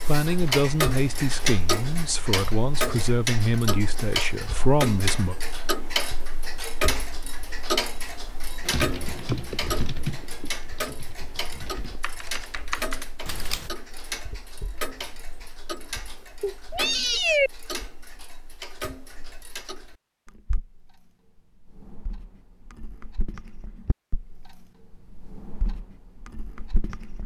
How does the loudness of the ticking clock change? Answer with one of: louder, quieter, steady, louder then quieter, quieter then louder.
quieter.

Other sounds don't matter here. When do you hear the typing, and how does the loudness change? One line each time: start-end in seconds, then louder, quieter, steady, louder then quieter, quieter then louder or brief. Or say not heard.
8.7-13.7 quieter then louder.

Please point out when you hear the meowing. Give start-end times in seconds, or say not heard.
16.4-17.5.